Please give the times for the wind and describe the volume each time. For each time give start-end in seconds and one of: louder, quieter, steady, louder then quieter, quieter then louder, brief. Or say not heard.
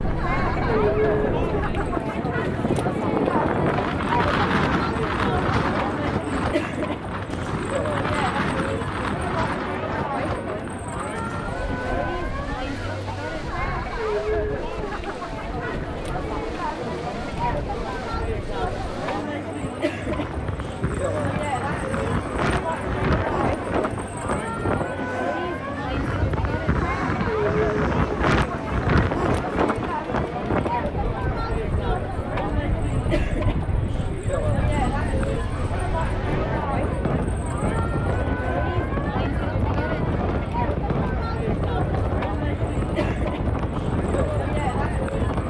0.0-45.4 quieter then louder.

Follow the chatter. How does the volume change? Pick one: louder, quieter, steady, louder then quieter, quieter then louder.
steady.